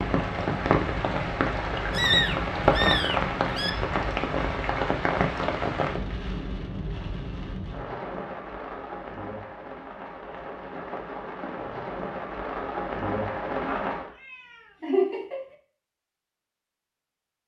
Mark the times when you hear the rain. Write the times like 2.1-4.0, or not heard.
0.0-14.1.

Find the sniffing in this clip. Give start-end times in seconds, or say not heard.
not heard.